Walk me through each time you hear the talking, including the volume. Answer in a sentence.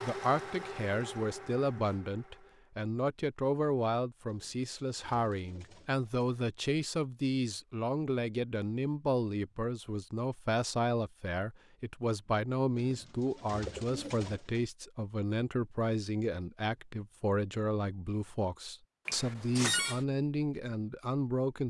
The talking can be heard from 0.0 to 21.6 s, at a steady volume.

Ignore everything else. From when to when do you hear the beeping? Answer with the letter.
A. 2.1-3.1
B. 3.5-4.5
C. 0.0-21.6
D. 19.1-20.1
D.